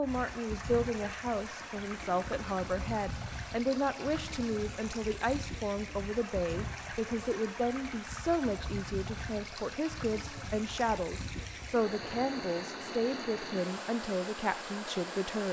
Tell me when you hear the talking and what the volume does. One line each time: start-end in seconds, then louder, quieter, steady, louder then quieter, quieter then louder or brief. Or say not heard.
0.0-15.4 steady.